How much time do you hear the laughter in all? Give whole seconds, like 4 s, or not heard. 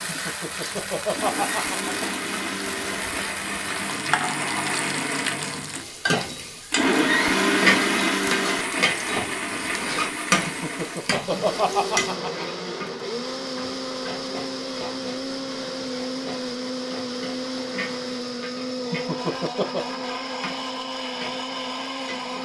5 s.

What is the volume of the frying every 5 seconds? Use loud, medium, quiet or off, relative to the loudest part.
loud, loud, loud, quiet, quiet.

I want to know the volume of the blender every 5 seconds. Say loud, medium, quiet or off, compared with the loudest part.
medium, loud, medium, medium, medium.